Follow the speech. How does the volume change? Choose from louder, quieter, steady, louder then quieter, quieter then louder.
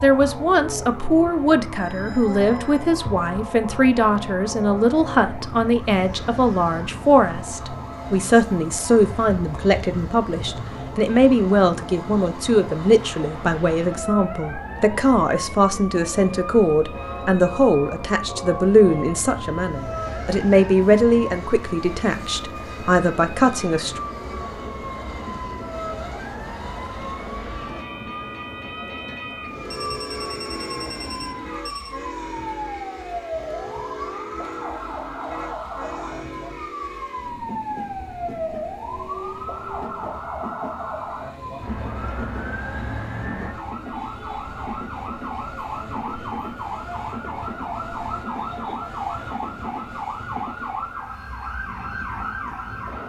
steady.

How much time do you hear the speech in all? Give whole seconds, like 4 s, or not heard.
24 s.